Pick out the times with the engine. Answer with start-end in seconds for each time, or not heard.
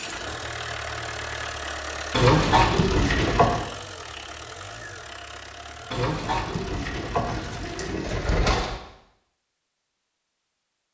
0.0-8.0.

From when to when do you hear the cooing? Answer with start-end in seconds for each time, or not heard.
2.1-3.6, 5.9-8.8.